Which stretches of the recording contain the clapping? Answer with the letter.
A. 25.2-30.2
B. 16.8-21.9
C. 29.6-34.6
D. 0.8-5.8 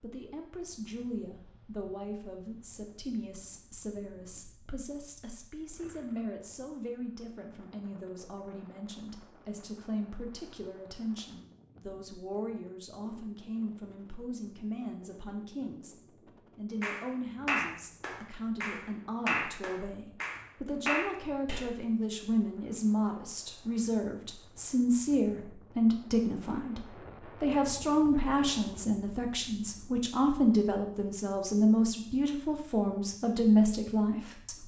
B.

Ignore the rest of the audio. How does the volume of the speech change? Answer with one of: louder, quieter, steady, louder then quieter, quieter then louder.
louder.